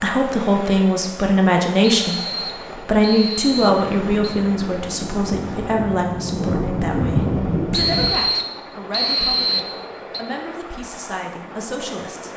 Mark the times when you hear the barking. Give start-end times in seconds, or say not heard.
not heard.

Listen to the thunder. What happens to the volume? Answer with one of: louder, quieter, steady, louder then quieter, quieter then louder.
louder.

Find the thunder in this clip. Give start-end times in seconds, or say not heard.
3.5-8.2.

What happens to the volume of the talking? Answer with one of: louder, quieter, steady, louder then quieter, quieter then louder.
quieter.